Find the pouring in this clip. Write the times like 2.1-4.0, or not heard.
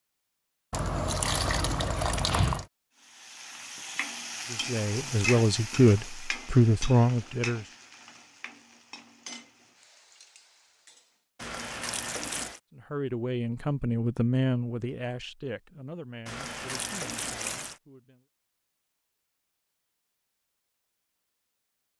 0.7-2.6, 11.3-12.6, 16.2-17.8.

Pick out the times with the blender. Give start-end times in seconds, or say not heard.
not heard.